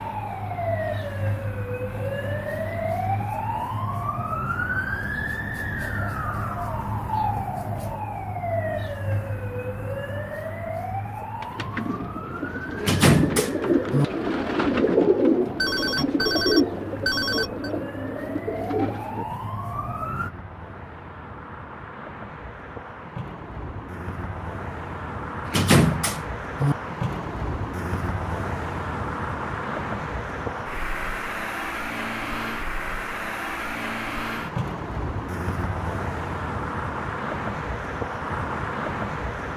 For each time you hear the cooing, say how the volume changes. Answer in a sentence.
You can hear the cooing from 11.4 to 19.2 s, getting louder then quieter.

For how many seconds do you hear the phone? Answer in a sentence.
The phone can be heard for 2 seconds in total.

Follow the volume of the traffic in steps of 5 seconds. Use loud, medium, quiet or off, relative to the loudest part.
quiet, quiet, quiet, quiet, medium, loud, loud, loud.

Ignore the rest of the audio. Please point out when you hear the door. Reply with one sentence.
You can hear the door from 12.8 to 14.1 s and from 25.4 to 26.8 s.